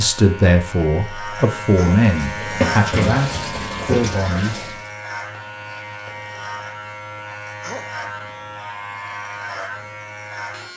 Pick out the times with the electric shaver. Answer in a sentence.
The electric shaver can be heard from 0.0 to 10.7 s.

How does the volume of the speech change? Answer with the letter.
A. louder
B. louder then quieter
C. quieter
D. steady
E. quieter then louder
D.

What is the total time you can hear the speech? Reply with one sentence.
The speech can be heard for 5 seconds in total.